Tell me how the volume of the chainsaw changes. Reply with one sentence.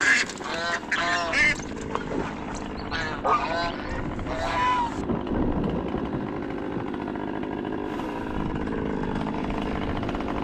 The loudness of the chainsaw goes up.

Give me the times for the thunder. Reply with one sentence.
You can hear the thunder from 5.0 to 6.8 s.